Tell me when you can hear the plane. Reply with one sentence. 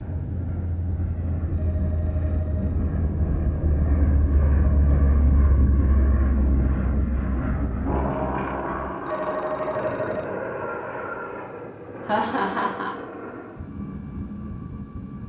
You can hear the plane from 0.0 to 15.2 s.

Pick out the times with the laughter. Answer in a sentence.
The laughter can be heard from 12.1 to 12.9 s.